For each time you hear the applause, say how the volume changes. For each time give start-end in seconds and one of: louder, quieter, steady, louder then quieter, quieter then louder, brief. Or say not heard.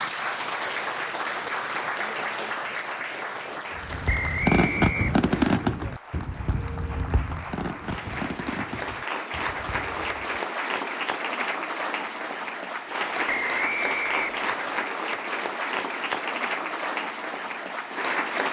0.0-18.4 quieter then louder.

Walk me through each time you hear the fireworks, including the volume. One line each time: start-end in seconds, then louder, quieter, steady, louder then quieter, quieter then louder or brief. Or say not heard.
3.8-10.4 quieter.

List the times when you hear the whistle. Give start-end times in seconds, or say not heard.
4.0-5.6, 13.2-14.8.